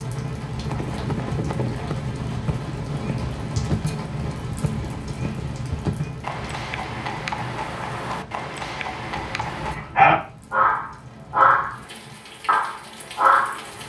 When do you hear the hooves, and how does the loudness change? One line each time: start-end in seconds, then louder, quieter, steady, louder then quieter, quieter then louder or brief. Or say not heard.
0.7-9.8 steady.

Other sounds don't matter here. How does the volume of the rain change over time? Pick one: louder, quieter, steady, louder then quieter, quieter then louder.
quieter.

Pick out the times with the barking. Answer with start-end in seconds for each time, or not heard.
9.1-11.8, 12.4-13.6.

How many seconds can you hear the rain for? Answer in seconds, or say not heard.
14 s.